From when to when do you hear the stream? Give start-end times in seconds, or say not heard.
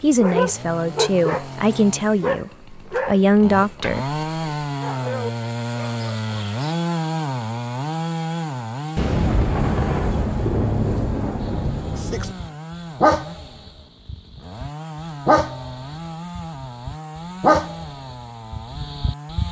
not heard.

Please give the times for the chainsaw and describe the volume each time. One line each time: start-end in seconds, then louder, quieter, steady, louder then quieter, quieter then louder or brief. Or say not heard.
0.0-19.4 louder then quieter.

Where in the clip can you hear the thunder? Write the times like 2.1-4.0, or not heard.
8.9-12.3.